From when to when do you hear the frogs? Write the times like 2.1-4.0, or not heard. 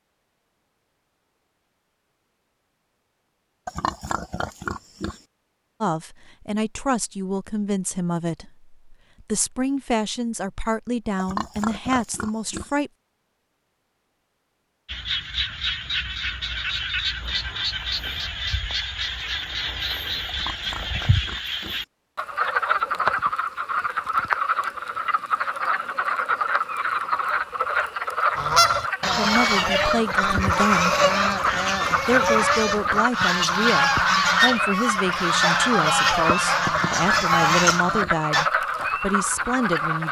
14.8-40.0.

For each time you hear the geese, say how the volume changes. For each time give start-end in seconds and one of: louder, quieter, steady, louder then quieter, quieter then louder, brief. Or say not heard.
28.4-38.5 steady.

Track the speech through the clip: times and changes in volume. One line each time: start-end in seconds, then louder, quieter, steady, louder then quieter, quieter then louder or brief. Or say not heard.
5.8-12.9 steady
29.1-30.9 brief
32.0-40.0 steady.